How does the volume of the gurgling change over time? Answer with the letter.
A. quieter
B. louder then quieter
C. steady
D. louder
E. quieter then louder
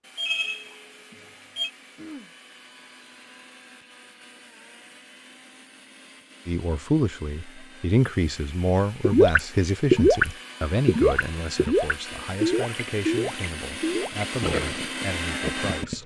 A.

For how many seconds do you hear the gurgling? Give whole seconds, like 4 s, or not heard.
7 s.